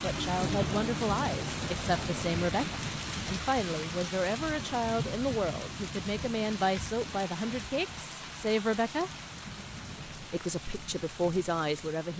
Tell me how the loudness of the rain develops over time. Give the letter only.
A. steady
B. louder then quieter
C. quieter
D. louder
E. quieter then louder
C.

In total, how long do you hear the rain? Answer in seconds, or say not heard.
12 s.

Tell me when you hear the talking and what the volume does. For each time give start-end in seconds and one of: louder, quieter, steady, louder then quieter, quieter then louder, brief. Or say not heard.
0.0-9.1 steady
10.1-12.1 brief.